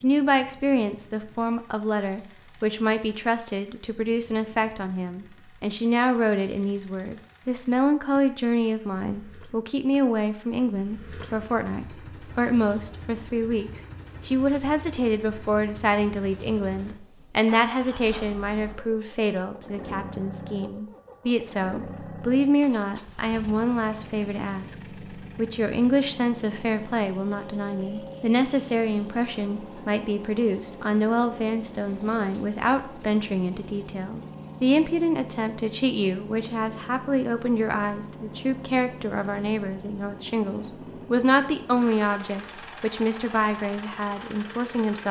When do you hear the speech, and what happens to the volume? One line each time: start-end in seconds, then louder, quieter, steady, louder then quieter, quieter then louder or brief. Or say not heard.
0.0-45.0 steady.